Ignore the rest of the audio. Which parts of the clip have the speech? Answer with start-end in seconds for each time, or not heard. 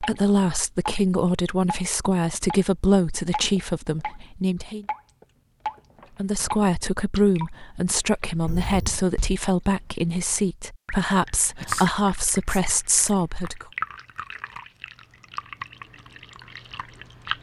0.0-4.8, 6.2-13.7.